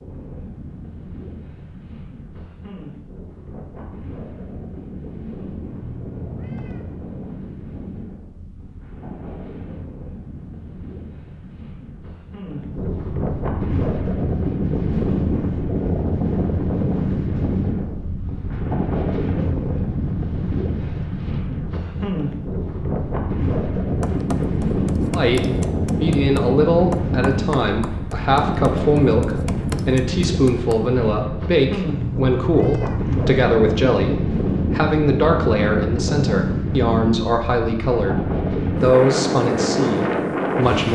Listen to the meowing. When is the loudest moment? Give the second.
33 s.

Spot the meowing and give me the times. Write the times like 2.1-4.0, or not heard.
5.7-7.0, 31.9-33.4.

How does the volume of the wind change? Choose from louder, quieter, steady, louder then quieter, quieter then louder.
louder.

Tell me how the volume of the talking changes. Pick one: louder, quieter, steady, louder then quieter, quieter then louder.
steady.